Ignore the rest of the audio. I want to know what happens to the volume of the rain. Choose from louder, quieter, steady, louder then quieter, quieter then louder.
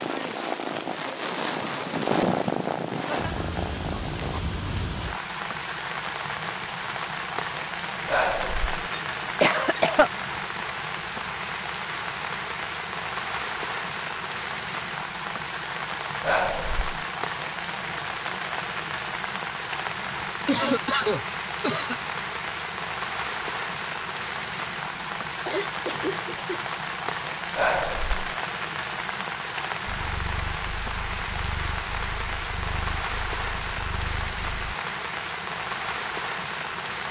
steady.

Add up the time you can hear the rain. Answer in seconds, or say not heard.
37 s.